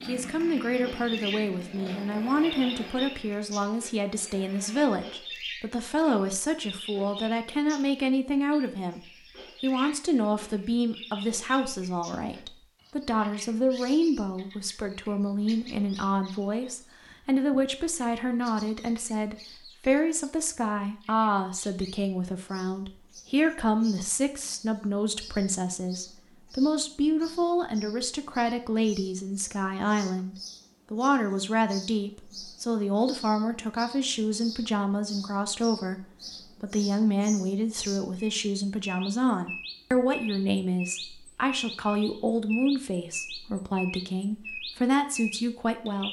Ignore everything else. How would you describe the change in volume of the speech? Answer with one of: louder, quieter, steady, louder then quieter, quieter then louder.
steady.